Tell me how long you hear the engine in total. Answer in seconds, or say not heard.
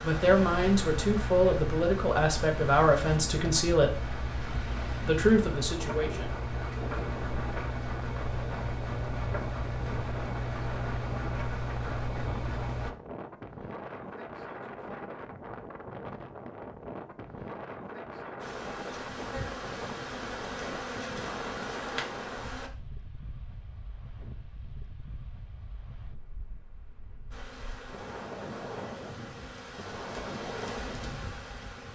13 s.